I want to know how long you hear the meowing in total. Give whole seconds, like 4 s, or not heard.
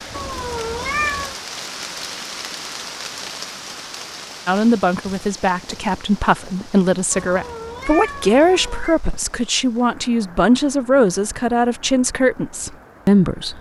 3 s.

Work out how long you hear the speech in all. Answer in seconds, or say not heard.
9 s.